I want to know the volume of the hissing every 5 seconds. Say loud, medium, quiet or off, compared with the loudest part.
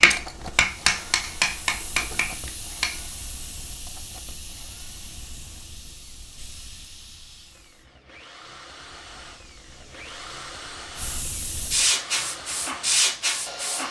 quiet, quiet, loud.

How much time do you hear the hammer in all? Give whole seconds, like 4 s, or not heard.
3 s.